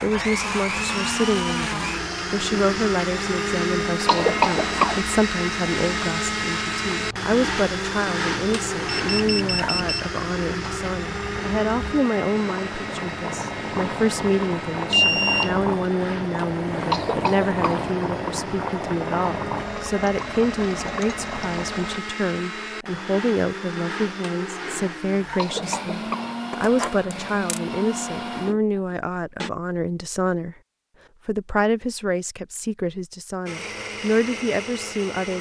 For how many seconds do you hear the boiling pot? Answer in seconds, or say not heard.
22 s.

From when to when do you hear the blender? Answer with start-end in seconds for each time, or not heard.
0.0-29.5, 33.5-35.3.